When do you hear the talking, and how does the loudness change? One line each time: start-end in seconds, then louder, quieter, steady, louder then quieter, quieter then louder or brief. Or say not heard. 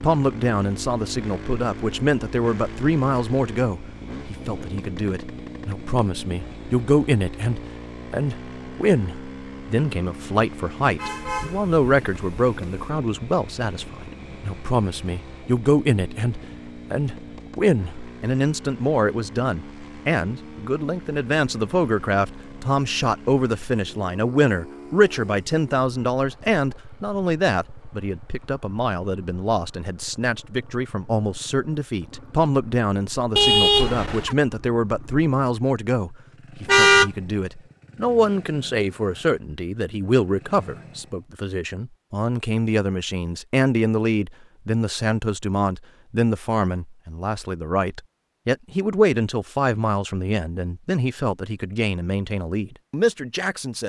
0.0-53.8 steady.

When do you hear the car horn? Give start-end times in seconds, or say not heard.
10.9-12.9, 33.4-34.4, 36.6-37.1.